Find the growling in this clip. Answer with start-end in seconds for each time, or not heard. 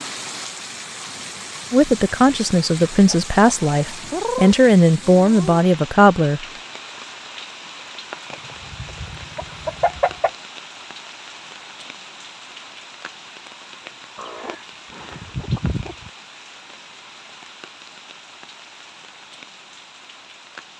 not heard.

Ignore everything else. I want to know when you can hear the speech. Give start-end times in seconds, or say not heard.
1.7-6.4.